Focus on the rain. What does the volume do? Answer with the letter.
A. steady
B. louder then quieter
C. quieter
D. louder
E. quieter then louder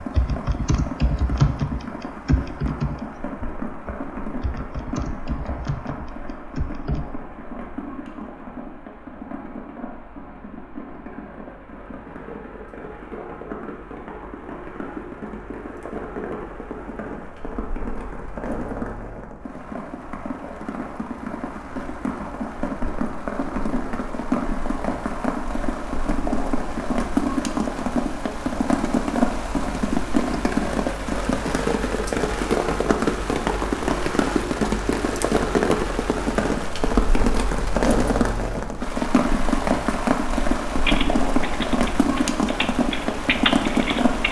D.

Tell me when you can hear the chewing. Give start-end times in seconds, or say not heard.
not heard.